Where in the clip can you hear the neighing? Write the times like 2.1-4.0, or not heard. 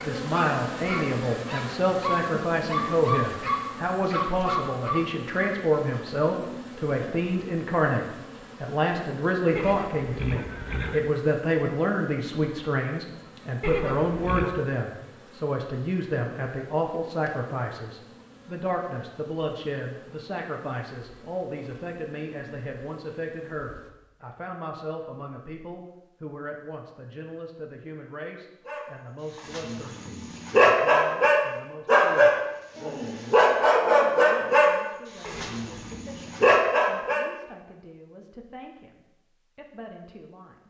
9.6-11.1, 13.6-14.7, 35.2-36.0.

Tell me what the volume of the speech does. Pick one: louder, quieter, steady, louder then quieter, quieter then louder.
quieter.